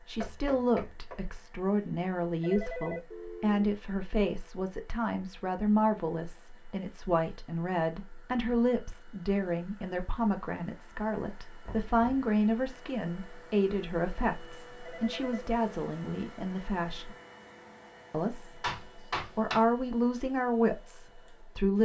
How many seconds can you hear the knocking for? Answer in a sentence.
You can hear the knocking for 3 seconds altogether.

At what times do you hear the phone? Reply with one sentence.
You can hear the phone from 2.4 to 3.7 s and from 14.8 to 15.6 s.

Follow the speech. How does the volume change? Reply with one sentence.
The volume of the speech stays about the same.